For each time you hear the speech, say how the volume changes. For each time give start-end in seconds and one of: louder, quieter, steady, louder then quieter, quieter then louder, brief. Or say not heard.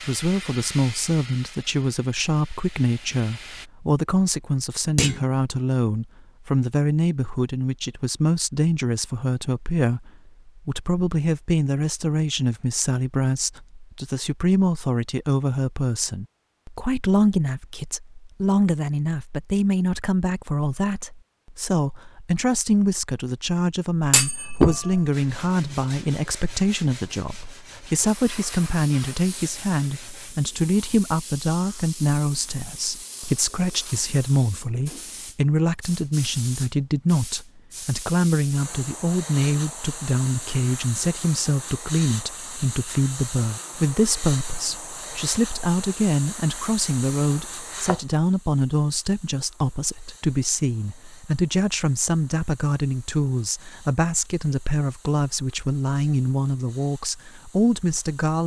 0.0-58.4 steady.